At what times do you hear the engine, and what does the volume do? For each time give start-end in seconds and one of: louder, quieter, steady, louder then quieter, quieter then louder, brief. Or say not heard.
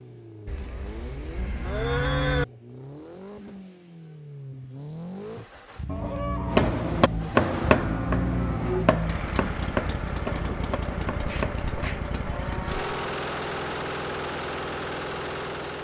0.0-15.7 louder.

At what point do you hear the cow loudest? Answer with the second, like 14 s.
2 s.